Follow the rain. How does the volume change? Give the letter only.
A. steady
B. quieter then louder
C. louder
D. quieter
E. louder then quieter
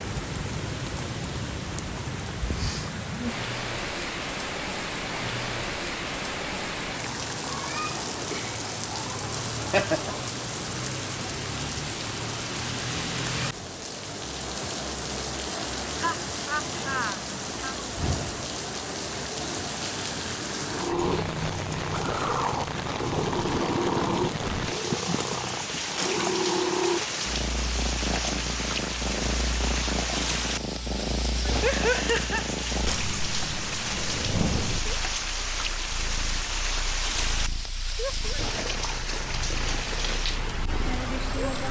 A.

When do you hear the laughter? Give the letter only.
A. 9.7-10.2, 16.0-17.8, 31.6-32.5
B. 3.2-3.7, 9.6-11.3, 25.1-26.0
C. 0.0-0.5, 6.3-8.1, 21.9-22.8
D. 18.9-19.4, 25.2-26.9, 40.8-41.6
A.